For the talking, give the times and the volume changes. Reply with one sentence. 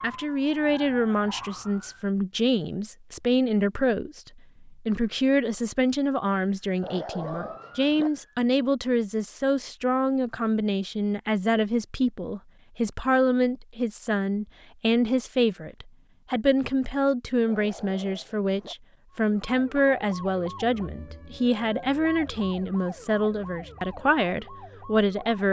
You can hear the talking from 0.0 to 25.4 s, at a steady volume.